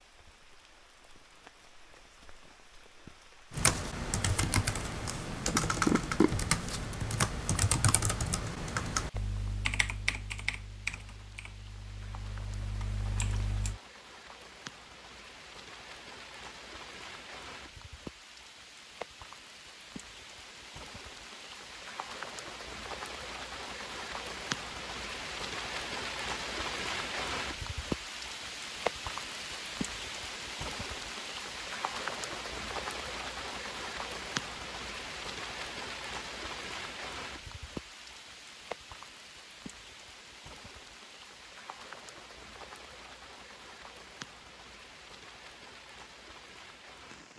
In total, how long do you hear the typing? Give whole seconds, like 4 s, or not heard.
10 s.